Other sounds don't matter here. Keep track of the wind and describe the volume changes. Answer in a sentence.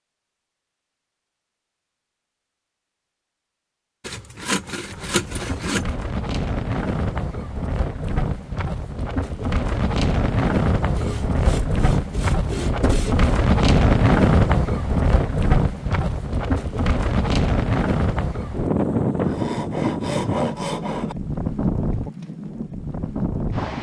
The volume of the wind goes up, then down.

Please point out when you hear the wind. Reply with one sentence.
You can hear the wind from 4.8 to 23.7 s.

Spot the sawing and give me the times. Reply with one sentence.
You can hear the sawing from 4.0 to 5.8 s, from 10.9 to 13.3 s and from 19.2 to 21.1 s.